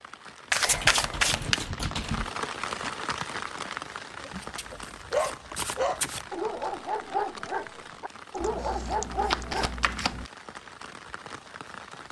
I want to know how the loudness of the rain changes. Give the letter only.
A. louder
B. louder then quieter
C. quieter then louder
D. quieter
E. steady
D.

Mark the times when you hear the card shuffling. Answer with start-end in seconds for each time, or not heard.
0.5-1.6, 4.3-6.3, 8.4-10.3.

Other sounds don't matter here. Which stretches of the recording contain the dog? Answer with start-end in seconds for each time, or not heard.
4.2-9.8.